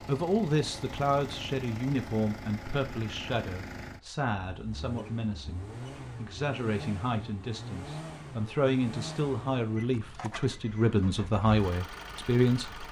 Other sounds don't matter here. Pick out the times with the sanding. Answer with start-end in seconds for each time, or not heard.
not heard.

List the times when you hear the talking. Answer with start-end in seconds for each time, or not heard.
0.1-12.8.